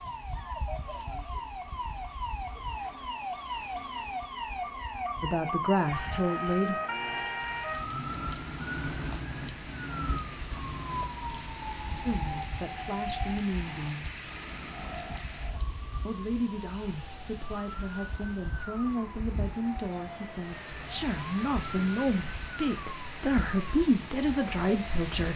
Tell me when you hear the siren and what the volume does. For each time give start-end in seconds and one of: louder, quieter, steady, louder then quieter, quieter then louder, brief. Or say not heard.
0.0-25.2 quieter.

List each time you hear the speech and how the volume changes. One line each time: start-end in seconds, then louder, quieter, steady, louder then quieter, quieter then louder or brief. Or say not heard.
5.2-6.8 brief
12.1-14.2 brief
16.1-25.3 louder.